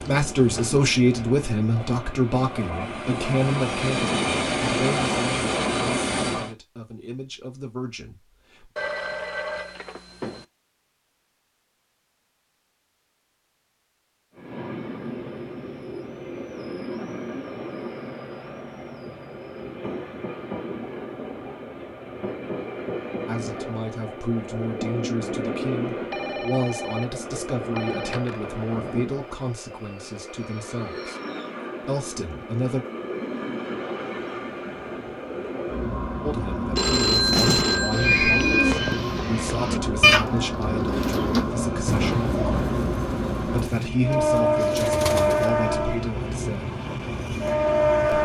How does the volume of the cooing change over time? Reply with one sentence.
The volume of the cooing goes down.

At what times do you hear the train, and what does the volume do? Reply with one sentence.
The train can be heard from 0.0 to 6.5 s, getting louder; and from 14.3 to 48.1 s, getting louder.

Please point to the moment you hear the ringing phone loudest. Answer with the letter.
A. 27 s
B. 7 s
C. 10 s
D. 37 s
D.